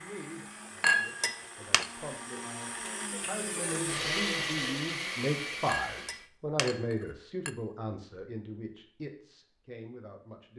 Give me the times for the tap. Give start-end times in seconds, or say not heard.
not heard.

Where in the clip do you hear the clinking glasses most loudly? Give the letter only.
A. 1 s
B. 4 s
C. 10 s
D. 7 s
A.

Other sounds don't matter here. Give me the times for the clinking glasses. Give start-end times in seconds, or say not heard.
0.8-1.9, 5.7-7.5.